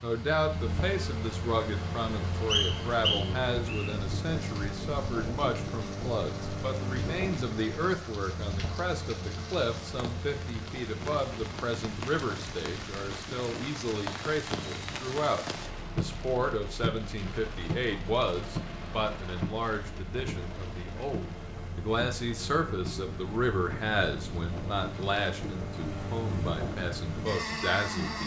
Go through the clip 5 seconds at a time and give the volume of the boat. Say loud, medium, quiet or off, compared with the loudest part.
loud, loud, medium, medium, medium, loud.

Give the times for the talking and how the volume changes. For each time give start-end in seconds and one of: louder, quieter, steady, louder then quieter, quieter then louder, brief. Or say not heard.
0.0-28.2 steady.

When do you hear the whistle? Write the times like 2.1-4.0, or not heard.
2.5-3.9.